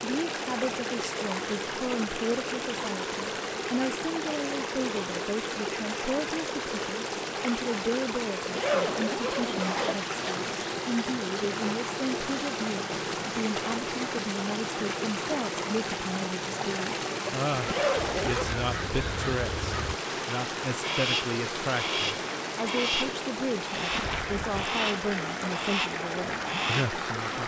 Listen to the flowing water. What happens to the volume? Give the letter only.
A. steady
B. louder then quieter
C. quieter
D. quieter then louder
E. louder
A.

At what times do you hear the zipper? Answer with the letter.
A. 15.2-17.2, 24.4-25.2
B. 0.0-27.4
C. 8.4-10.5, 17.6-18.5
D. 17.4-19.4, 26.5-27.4
C.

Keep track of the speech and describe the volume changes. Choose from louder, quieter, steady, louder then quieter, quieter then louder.
steady.